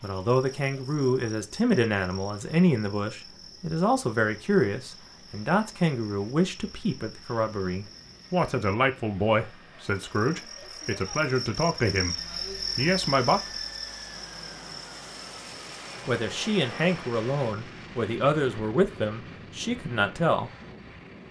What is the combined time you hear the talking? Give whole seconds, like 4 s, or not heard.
17 s.